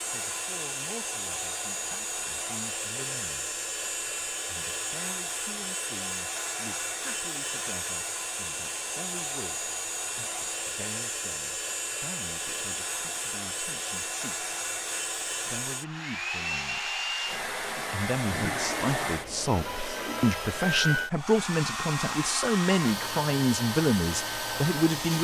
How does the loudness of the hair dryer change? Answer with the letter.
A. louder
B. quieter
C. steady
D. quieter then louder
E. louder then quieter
C.